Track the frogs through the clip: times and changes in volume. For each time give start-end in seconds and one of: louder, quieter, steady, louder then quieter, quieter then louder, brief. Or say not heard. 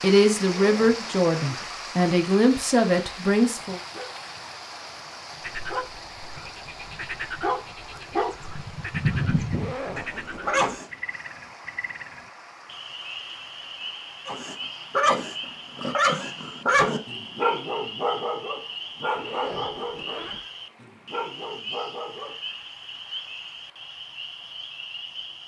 5.4-25.4 steady.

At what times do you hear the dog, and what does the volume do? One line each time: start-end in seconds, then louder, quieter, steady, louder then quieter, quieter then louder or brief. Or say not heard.
3.4-10.8 louder
14.2-22.4 quieter.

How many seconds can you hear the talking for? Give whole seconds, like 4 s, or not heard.
4 s.